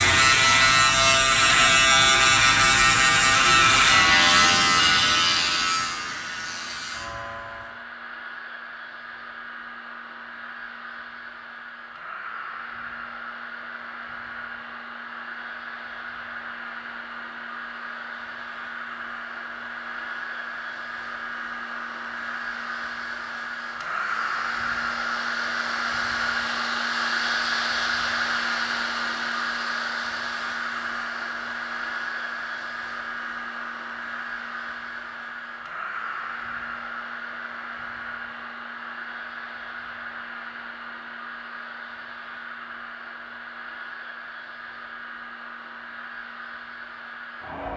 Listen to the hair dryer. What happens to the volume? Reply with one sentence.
The loudness of the hair dryer goes up, then down.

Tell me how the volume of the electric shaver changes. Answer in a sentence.
The volume of the electric shaver goes down.